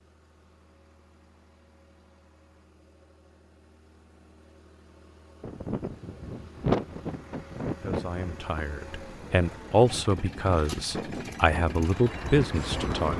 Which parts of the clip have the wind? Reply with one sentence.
You can hear the wind from 5.4 to 13.1 s.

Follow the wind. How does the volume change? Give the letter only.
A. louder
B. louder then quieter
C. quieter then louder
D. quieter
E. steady
C.